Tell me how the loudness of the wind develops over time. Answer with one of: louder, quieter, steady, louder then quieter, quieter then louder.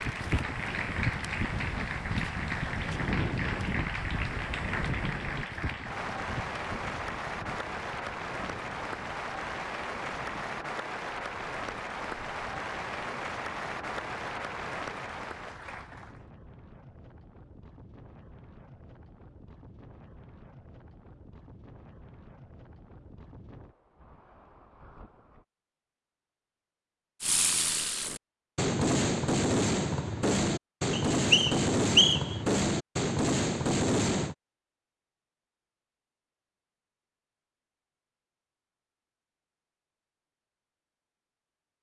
quieter.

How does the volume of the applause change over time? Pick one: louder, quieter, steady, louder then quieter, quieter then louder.
steady.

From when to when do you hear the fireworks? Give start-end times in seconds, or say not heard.
27.2-34.4.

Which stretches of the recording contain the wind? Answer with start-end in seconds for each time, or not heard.
0.0-25.4.